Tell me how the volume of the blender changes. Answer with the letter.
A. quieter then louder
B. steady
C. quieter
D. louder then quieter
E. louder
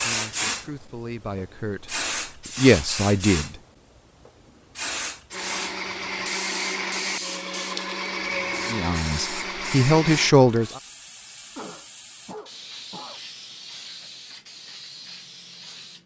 B.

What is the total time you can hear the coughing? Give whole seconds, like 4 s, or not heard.
2 s.